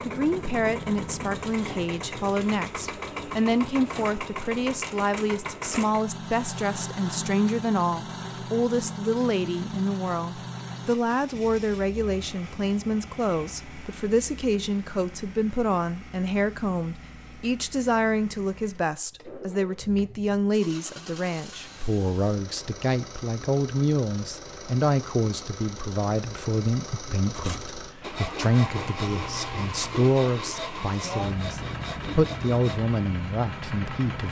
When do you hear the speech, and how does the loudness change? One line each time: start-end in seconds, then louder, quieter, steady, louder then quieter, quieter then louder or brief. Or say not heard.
0.1-34.2 steady.